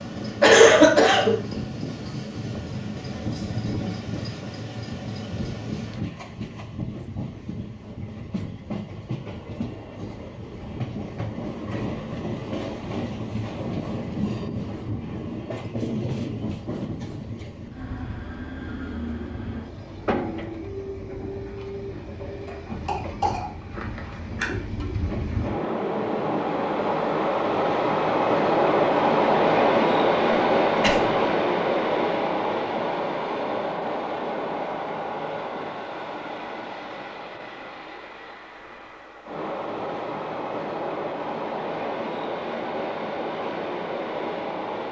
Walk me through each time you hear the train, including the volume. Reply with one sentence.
The train can be heard from 0.0 to 44.8 s, getting louder then quieter.